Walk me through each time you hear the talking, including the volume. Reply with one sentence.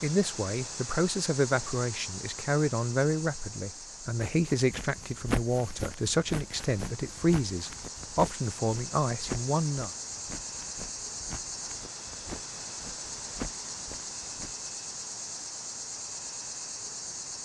You can hear the talking from 0.0 to 9.9 s, at a steady volume.